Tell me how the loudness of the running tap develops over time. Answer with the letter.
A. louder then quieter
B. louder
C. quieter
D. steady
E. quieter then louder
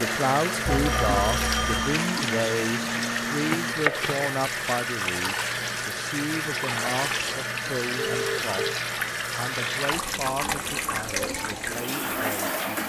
D.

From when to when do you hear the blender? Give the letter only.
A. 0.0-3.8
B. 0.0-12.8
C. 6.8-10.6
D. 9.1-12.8
A.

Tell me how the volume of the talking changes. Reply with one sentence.
The volume of the talking goes down.